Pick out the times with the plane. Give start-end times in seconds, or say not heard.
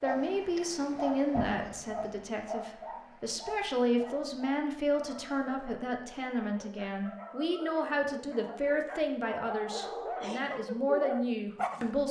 not heard.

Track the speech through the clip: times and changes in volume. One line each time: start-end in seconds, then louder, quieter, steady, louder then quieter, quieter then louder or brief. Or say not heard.
0.0-12.0 steady.